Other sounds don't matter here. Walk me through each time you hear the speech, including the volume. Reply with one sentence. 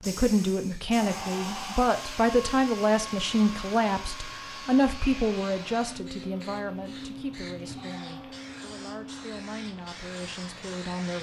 The speech can be heard from 0.1 to 11.1 s, getting quieter.